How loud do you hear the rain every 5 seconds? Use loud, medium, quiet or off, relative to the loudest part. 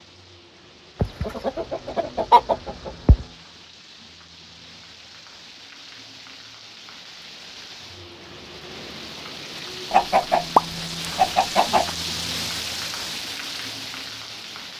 quiet, medium, loud.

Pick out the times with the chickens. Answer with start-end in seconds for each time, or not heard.
1.0-3.2, 9.9-11.9.